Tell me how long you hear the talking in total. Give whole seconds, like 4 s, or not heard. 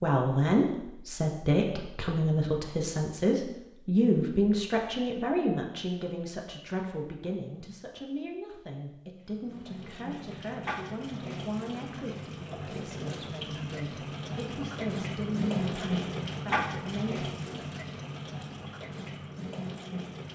17 s.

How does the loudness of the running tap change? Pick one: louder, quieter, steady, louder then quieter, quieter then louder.
louder then quieter.